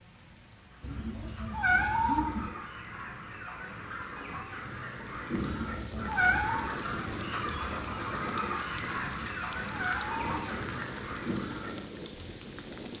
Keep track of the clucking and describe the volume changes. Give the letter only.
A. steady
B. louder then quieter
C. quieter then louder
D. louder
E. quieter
D.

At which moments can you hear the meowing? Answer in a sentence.
The meowing can be heard from 0.8 to 2.5 s, from 5.3 to 6.7 s and from 9.2 to 10.6 s.